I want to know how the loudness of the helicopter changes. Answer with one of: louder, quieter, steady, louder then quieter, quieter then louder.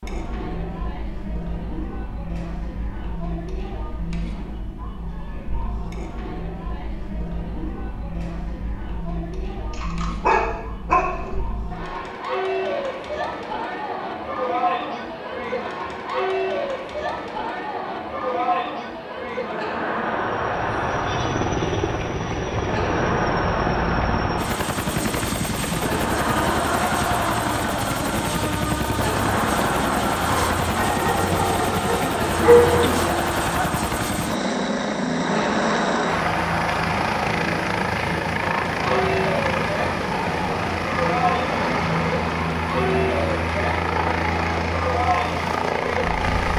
steady.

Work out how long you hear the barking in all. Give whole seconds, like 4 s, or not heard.
4 s.